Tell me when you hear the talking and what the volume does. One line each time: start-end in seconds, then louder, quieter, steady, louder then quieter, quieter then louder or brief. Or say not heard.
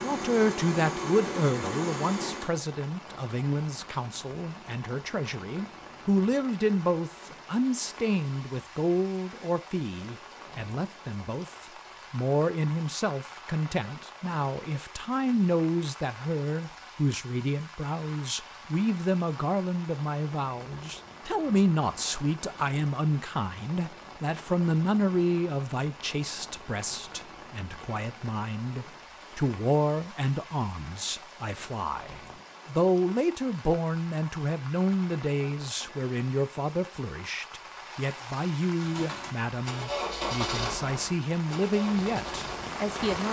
0.0-43.2 steady.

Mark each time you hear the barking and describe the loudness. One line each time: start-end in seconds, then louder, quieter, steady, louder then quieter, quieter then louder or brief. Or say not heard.
not heard.